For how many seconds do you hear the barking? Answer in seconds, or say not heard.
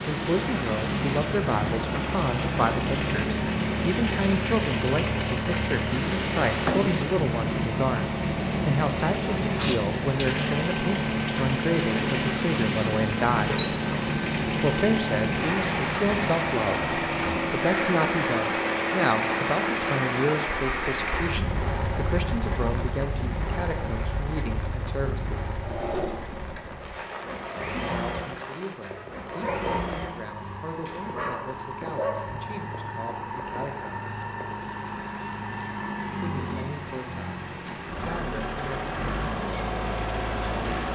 3 s.